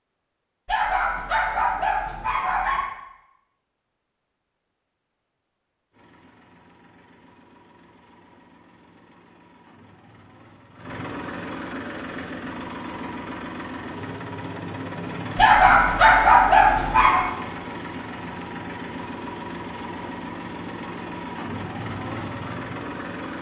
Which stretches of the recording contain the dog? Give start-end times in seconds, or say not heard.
0.7-2.9, 15.3-17.2.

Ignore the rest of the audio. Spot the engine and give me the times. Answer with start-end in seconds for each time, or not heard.
5.9-23.3.